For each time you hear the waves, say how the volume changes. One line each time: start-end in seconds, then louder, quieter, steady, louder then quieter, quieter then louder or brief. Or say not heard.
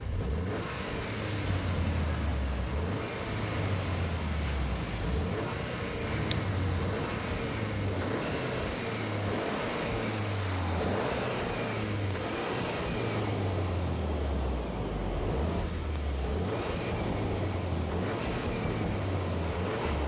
0.0-20.0 steady.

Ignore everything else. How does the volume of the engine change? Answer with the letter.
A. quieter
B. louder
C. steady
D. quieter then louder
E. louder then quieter
C.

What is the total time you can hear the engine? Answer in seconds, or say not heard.
20 s.